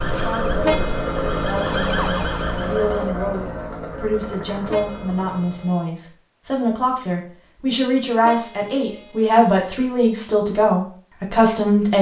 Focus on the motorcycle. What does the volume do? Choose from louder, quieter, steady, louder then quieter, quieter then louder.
quieter.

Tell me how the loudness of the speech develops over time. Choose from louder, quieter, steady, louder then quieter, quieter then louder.
louder.